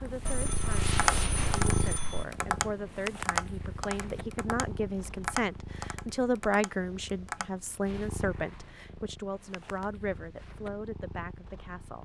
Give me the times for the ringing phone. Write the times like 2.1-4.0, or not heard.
0.2-2.2.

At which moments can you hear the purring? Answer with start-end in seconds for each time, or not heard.
0.0-12.0.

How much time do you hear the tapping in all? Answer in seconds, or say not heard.
7 s.